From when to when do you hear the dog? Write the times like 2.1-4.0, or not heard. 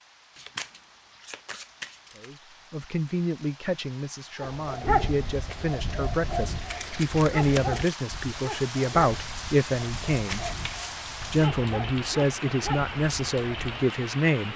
4.4-13.8.